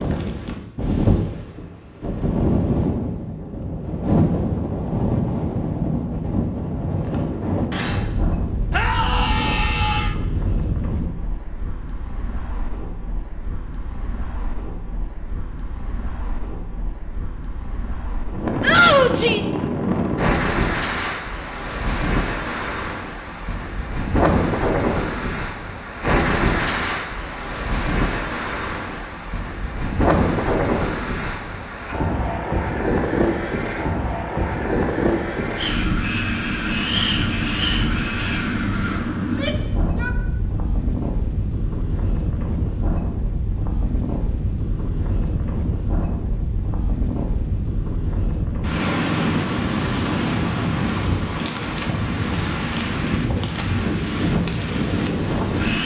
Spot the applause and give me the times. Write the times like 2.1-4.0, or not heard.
not heard.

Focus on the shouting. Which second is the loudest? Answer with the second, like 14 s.
19 s.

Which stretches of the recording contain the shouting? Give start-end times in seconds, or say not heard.
8.7-10.2, 18.6-19.4, 39.2-40.1.